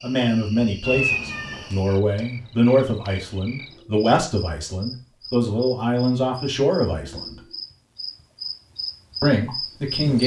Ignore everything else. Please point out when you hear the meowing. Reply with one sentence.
You can hear the meowing from 0.8 to 1.8 s.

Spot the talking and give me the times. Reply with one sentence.
The talking can be heard from 0.0 to 7.3 s and from 9.2 to 10.2 s.